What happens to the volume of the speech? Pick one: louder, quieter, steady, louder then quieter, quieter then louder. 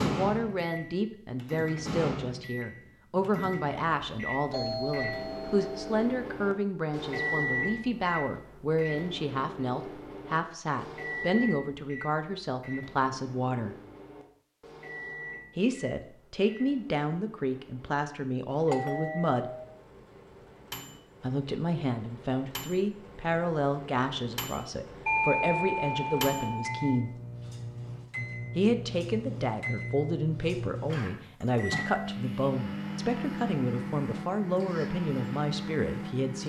steady.